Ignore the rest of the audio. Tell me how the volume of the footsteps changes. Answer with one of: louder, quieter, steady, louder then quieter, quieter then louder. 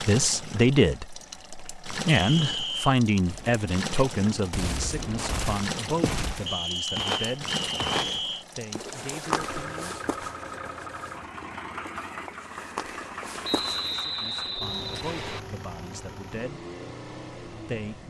quieter then louder.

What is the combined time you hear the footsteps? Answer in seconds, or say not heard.
9 s.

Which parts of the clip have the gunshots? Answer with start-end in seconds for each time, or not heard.
3.2-6.5.